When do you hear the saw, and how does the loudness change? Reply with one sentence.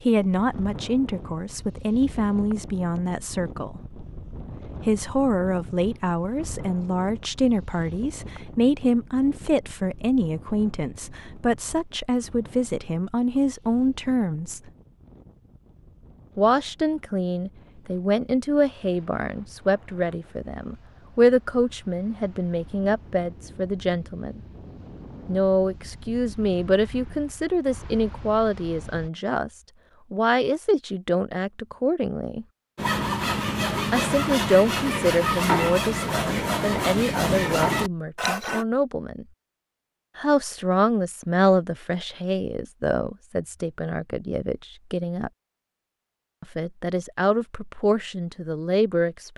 The saw can be heard from 32.8 to 38.6 s, at a steady volume.